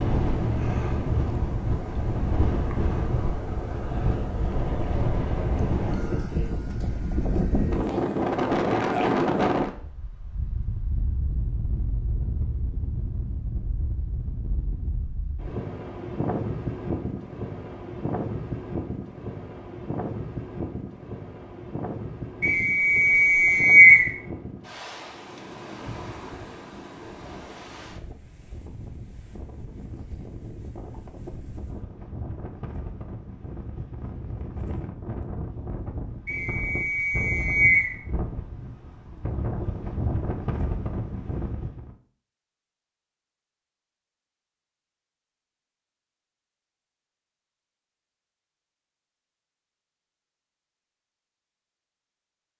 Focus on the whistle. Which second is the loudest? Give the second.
24 s.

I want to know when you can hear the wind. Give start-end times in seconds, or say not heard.
0.0-42.0.